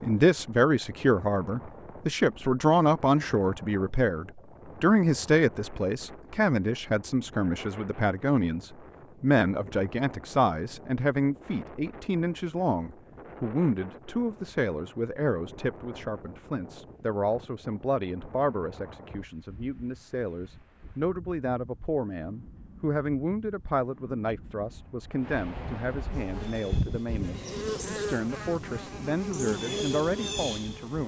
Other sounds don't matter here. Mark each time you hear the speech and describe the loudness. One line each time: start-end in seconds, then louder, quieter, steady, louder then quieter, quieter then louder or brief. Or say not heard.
0.0-31.0 quieter.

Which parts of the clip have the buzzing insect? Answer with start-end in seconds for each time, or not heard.
26.1-31.0.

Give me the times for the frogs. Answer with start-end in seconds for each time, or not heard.
not heard.